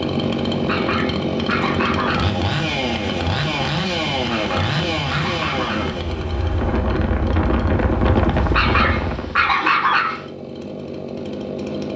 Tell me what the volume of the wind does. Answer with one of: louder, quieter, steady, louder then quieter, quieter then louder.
louder.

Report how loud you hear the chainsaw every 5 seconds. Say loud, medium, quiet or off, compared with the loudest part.
loud, medium, medium.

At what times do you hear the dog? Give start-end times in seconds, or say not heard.
0.5-2.4, 4.3-6.0, 8.3-10.2.